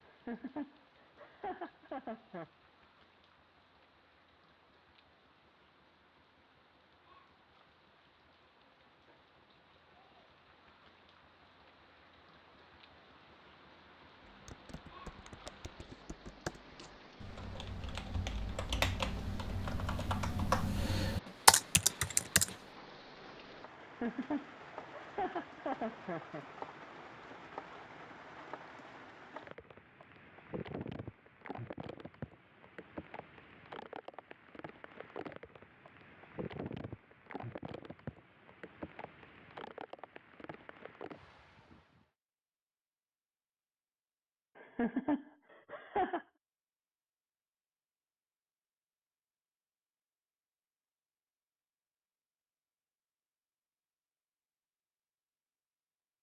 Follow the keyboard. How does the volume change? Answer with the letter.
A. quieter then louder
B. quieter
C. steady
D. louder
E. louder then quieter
D.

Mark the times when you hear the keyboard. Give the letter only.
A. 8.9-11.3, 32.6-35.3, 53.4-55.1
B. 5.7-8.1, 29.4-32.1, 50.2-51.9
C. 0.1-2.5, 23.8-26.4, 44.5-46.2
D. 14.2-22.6
D.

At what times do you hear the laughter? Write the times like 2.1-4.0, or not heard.
0.1-2.5, 23.8-26.4, 44.5-46.2.